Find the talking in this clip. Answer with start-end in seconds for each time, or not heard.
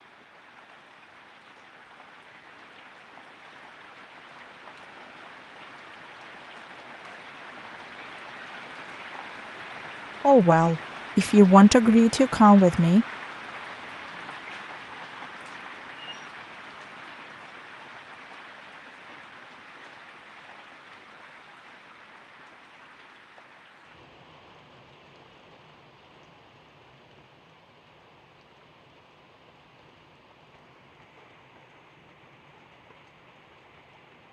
10.2-13.1.